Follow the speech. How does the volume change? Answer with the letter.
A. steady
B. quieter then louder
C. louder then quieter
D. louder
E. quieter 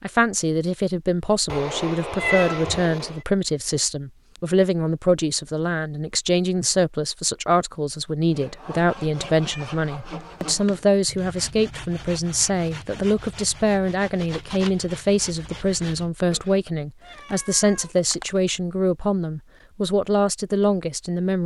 A.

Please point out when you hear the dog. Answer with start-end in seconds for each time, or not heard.
not heard.